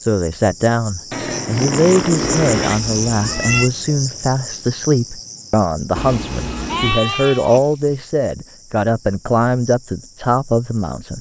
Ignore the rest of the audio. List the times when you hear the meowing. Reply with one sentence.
You can hear the meowing from 2.2 to 3.7 s and from 6.0 to 7.0 s.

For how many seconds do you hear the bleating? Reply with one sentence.
The bleating can be heard for 3 seconds in total.